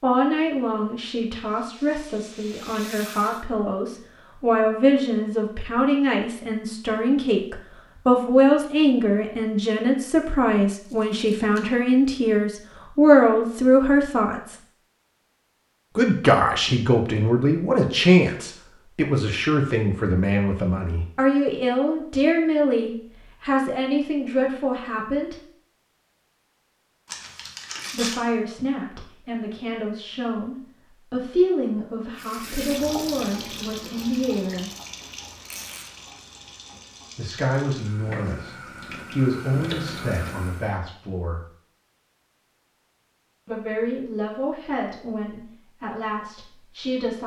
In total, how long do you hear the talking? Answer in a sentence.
The talking can be heard for 39 seconds in total.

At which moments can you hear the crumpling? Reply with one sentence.
You can hear the crumpling from 10.8 to 11.7 s, from 27.1 to 28.2 s and from 35.3 to 35.9 s.